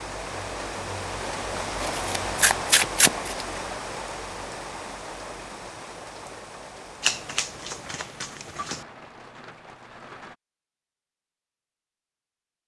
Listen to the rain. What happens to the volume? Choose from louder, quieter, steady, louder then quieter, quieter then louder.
quieter.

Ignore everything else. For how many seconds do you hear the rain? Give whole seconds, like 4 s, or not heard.
10 s.